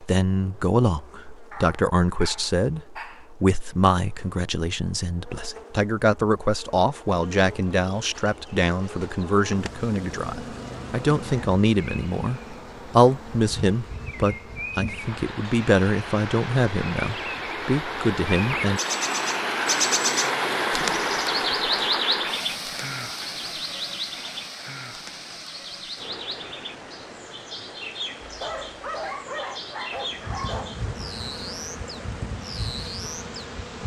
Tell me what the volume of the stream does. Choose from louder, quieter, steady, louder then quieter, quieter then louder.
louder then quieter.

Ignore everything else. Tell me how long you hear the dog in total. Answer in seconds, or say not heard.
4 s.